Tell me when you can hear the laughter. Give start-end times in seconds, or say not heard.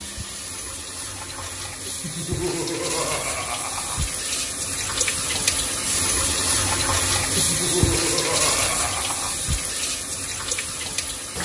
2.0-4.0, 7.3-9.3.